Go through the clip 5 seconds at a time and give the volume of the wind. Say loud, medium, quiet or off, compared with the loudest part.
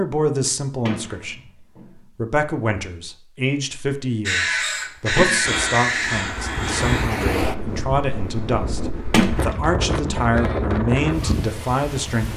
off, loud, loud.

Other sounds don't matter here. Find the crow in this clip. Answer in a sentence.
You can hear the crow from 4.2 to 7.2 s.